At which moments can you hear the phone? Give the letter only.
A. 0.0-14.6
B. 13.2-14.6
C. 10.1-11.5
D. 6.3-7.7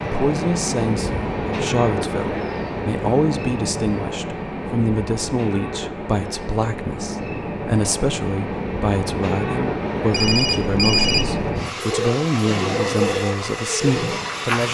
C.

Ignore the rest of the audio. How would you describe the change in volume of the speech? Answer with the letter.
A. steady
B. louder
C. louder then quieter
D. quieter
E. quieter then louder
A.